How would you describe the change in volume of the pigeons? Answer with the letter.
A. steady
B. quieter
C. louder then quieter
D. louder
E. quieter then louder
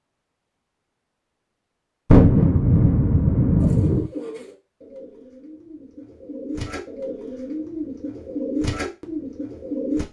E.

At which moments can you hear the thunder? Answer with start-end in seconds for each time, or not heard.
2.1-4.1.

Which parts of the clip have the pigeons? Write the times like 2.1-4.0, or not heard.
3.6-10.0.